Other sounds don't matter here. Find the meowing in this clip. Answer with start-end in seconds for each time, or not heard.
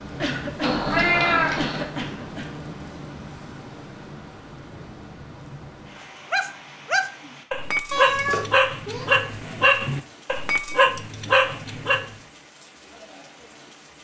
0.6-1.9, 7.9-9.1.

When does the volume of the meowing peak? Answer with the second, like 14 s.
1 s.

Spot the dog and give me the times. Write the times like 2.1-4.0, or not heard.
6.3-12.1.